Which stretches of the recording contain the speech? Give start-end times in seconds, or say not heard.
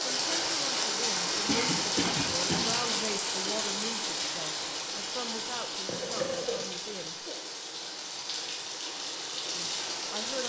0.1-7.2, 9.5-10.4.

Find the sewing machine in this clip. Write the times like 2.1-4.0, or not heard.
not heard.